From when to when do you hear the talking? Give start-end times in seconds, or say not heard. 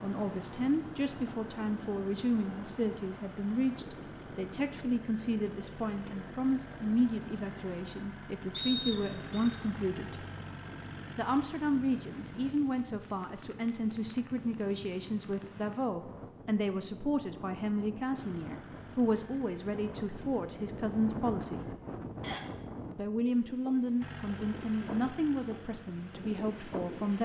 0.0-10.2, 11.2-21.6, 22.9-27.2.